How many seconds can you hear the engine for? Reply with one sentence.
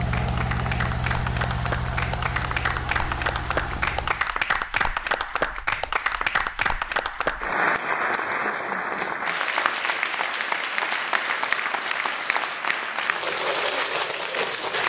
You can hear the engine for 4 seconds altogether.